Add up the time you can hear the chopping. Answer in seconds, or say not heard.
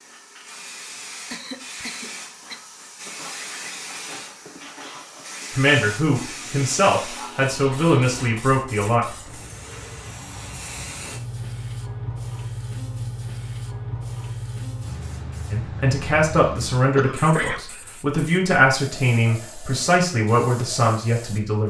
not heard.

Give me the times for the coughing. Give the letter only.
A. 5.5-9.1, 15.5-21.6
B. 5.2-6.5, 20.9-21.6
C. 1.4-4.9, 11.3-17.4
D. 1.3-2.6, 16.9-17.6
D.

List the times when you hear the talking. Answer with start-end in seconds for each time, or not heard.
5.5-9.1, 15.5-21.6.